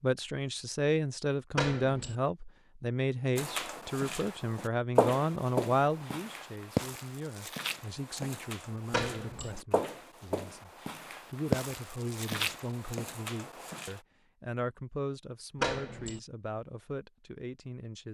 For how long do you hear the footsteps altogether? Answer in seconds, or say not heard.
11 s.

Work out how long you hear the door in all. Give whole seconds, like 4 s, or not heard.
2 s.